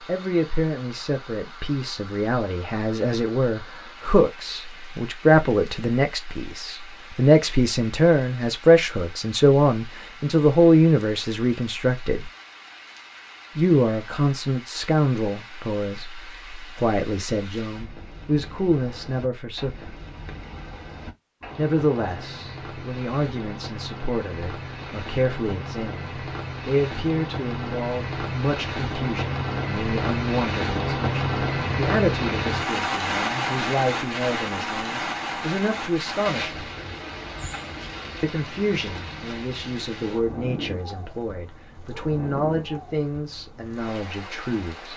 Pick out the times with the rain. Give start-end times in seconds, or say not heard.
0.0-44.9.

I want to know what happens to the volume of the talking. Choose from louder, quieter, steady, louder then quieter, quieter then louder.
quieter.